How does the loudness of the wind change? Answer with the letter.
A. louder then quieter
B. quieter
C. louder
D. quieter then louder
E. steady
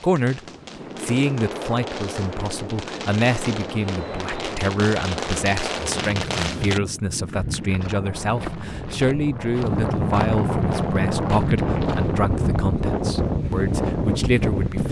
C.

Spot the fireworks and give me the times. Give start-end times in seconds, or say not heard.
0.0-6.8.